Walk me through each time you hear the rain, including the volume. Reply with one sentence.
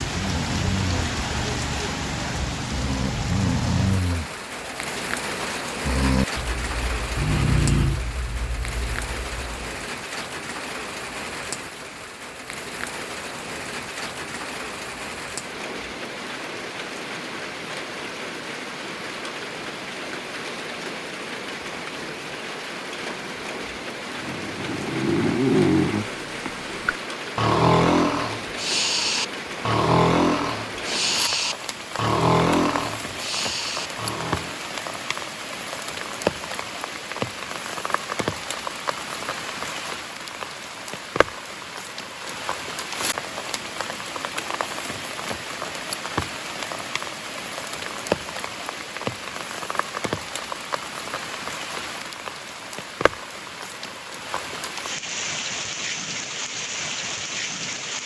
You can hear the rain from 0.0 to 58.0 s, at a steady volume.